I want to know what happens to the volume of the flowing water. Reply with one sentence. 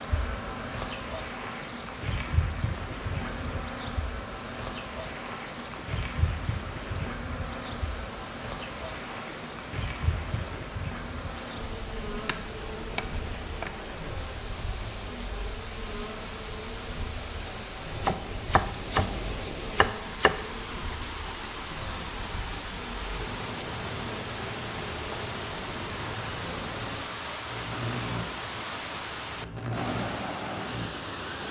The volume of the flowing water goes up.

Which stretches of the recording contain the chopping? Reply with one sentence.
The chopping can be heard from 12.2 to 13.8 s and from 18.0 to 20.4 s.